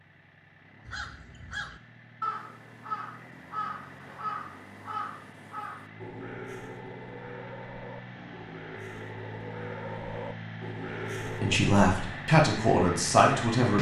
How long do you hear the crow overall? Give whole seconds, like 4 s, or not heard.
11 s.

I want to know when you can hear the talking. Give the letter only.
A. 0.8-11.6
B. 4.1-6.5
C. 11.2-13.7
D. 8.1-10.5
C.